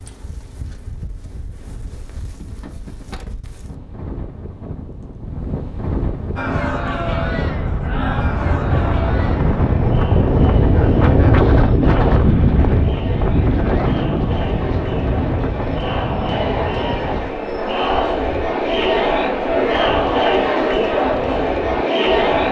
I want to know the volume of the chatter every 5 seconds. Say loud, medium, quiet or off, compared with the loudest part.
off, medium, quiet, loud, loud.